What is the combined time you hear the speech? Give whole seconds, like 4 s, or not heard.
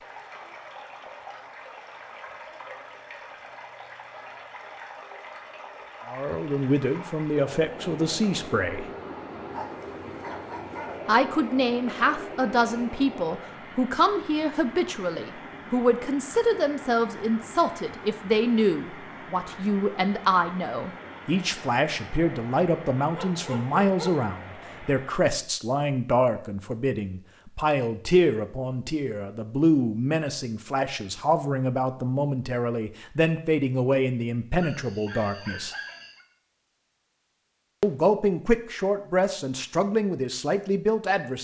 31 s.